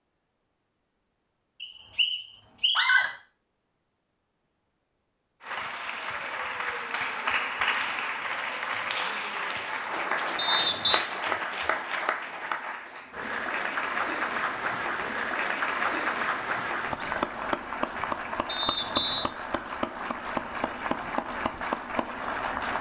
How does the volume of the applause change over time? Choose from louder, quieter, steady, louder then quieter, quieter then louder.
steady.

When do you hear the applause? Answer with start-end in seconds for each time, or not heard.
5.4-22.7.